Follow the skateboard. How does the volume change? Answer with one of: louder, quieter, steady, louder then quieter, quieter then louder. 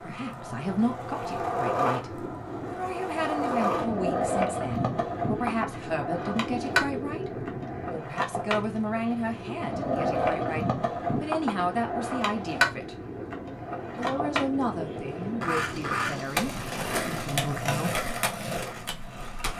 steady.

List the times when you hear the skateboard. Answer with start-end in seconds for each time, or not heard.
0.0-19.5.